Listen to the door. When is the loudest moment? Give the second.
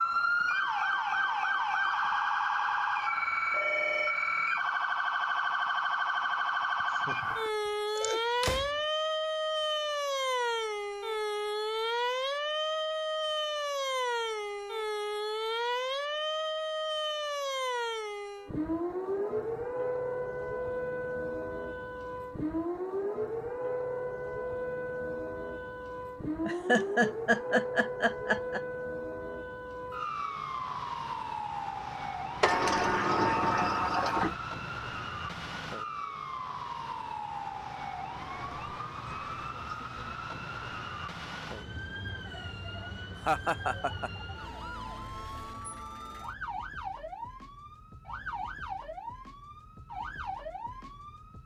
33 s.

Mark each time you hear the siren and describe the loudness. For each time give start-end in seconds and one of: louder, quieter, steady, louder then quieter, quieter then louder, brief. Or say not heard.
0.0-51.4 quieter.